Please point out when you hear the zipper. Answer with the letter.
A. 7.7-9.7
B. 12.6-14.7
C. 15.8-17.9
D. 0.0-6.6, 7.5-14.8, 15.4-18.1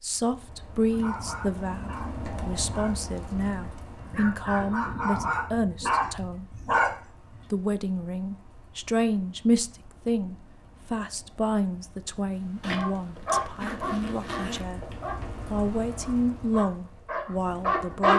B.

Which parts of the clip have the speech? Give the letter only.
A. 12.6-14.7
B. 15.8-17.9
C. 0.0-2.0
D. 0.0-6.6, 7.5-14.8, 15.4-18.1
D.